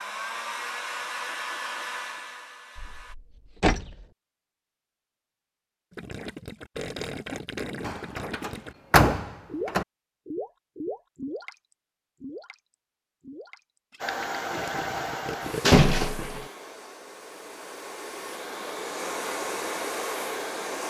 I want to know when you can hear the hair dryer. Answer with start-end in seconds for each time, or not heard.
0.0-3.1, 14.0-20.8.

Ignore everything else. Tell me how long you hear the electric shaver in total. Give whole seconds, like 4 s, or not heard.
not heard.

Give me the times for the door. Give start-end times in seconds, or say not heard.
2.8-4.0, 7.8-9.8, 15.7-16.4.